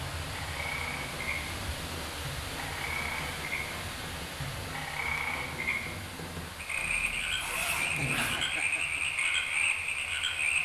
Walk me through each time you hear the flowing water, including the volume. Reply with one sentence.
The flowing water can be heard from 0.0 to 10.6 s, getting quieter.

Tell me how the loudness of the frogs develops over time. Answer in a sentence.
The loudness of the frogs goes up.